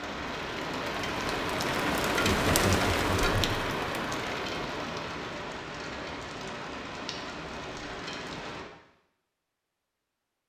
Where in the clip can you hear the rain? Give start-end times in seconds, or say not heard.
0.0-8.7.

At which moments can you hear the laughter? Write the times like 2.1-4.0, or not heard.
2.1-3.6.